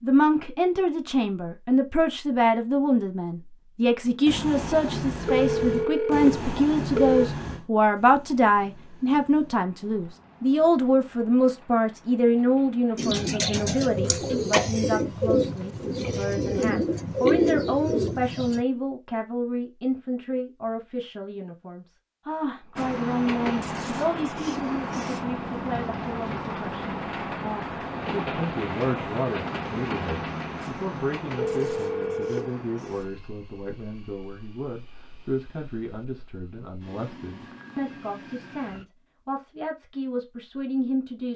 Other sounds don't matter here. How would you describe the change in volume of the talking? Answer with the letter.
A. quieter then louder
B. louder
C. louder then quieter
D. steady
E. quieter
E.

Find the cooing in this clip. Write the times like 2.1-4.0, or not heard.
12.9-18.6.